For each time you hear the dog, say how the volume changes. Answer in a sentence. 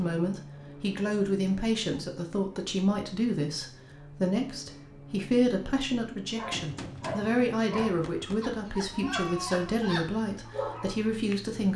You can hear the dog from 6.3 to 11.4 s, at a steady volume.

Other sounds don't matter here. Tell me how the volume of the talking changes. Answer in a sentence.
The loudness of the talking stays about the same.